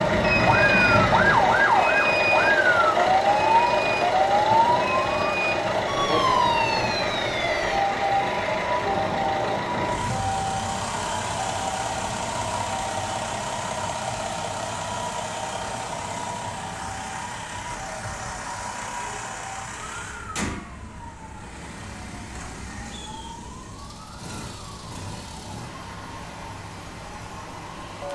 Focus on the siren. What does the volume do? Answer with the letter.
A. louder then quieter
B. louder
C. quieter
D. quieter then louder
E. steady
C.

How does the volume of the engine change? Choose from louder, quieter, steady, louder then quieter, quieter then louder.
quieter.